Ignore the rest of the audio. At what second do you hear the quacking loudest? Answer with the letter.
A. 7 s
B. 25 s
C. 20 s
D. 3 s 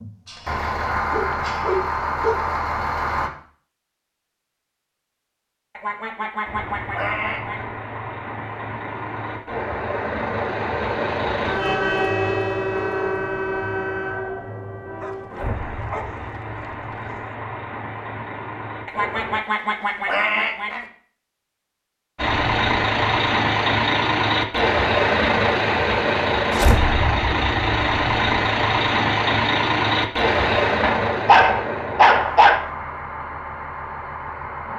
C.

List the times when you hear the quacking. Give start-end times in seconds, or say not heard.
5.8-7.7, 18.9-20.9.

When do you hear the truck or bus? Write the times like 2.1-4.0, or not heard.
0.0-3.3, 6.5-19.4, 22.1-34.7.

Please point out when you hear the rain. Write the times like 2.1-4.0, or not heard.
not heard.